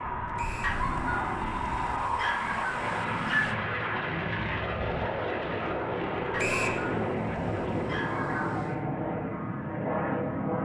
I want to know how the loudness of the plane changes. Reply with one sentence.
The loudness of the plane stays about the same.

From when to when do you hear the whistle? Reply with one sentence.
The whistle can be heard from 0.3 to 0.8 s and from 6.3 to 6.8 s.